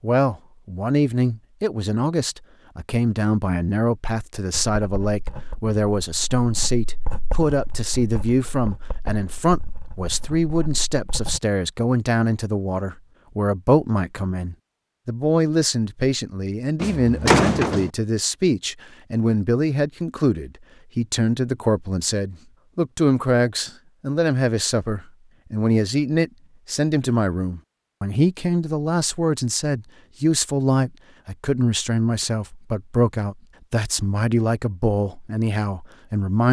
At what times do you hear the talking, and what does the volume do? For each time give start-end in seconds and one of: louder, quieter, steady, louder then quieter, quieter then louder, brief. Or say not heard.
0.0-36.4 steady.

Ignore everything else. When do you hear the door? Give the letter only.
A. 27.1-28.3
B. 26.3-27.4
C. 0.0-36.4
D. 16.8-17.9
D.